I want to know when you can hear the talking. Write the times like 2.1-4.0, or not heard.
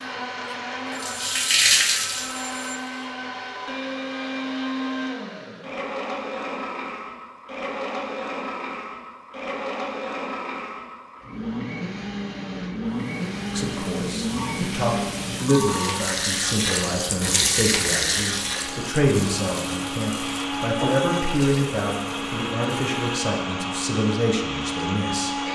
13.5-25.4.